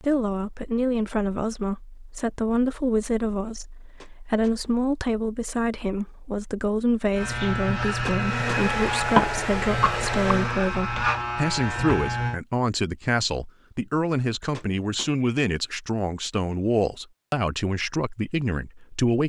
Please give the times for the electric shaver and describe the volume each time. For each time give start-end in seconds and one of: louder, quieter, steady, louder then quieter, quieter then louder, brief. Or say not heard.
7.2-12.4 steady.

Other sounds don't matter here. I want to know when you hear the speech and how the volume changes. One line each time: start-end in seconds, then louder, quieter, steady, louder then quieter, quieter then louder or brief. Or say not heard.
0.0-19.2 steady.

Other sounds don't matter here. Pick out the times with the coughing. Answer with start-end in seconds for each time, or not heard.
9.2-10.3.